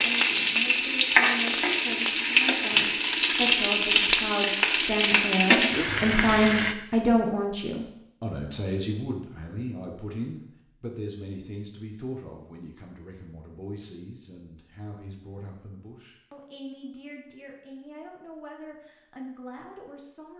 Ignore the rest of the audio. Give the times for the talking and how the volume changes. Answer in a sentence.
You can hear the talking from 0.0 to 20.3 s, getting louder then quieter.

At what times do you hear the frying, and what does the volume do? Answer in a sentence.
The frying can be heard from 0.0 to 6.8 s, at a steady volume.